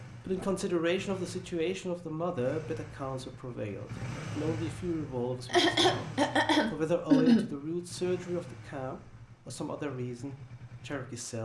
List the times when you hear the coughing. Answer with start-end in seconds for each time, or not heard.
5.5-7.5.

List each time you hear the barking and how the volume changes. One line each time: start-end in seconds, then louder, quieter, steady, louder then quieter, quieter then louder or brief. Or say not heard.
not heard.